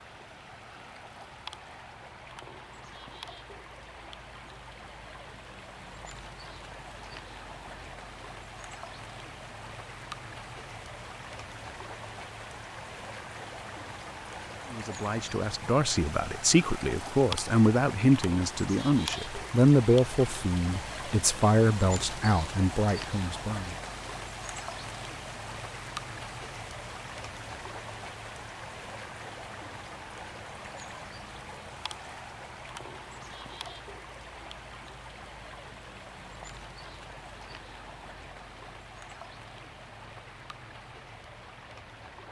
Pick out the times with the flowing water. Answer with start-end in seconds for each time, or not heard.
0.0-42.2.